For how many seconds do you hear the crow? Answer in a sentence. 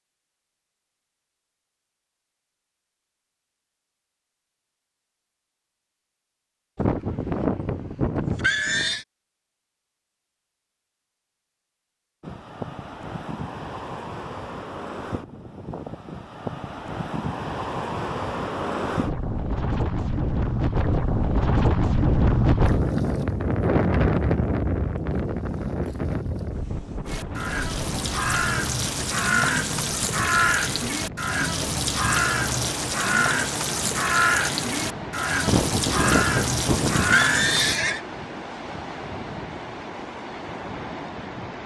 The crow can be heard for 11 seconds in total.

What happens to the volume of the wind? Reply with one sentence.
The loudness of the wind goes up, then down.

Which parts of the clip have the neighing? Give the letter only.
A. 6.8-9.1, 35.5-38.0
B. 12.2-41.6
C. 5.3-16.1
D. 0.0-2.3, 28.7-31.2
A.